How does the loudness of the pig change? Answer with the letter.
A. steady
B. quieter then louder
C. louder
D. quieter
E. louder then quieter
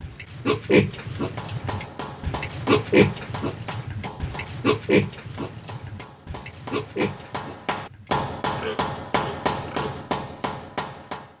D.